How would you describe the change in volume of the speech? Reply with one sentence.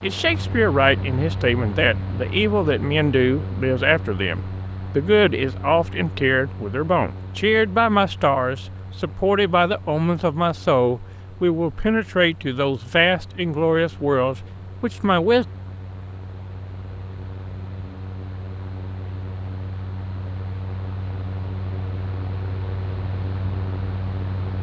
The volume of the speech stays about the same.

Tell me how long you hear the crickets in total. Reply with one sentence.
The crickets can't be heard in this clip.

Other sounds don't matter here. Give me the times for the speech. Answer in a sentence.
The speech can be heard from 0.0 to 15.4 s.